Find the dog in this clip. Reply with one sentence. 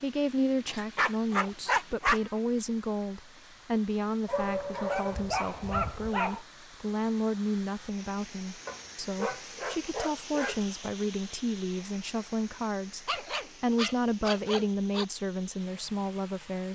You can hear the dog from 0.7 to 2.3 s, from 4.2 to 6.4 s, from 8.7 to 10.6 s and from 13.1 to 15.1 s.